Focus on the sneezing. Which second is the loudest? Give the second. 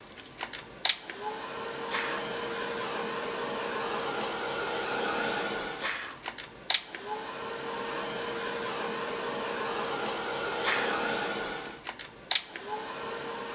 11 s.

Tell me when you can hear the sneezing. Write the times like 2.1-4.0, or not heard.
1.7-2.2, 5.6-6.2, 10.6-11.0.